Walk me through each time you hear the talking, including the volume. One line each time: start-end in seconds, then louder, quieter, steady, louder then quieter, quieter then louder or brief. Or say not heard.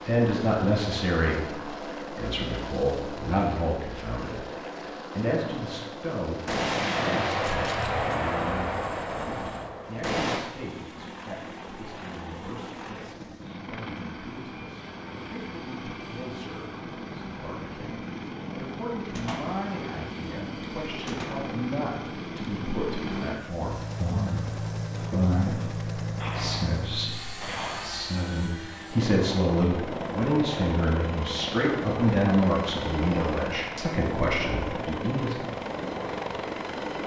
0.1-35.5 quieter then louder.